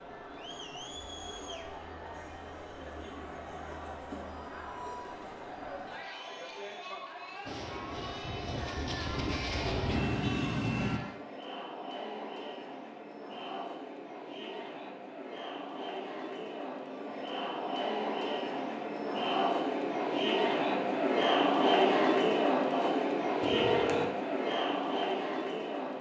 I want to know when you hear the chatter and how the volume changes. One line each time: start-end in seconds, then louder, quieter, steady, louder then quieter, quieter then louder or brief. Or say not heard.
0.0-25.9 louder.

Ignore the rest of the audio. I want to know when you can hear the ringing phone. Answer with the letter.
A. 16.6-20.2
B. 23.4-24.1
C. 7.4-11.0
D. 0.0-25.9
B.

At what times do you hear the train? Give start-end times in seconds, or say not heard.
7.4-11.0.